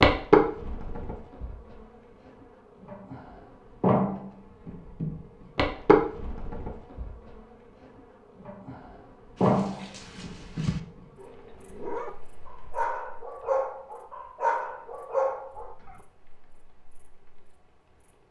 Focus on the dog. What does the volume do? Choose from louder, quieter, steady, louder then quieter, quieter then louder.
louder.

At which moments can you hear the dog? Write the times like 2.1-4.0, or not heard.
9.3-15.9.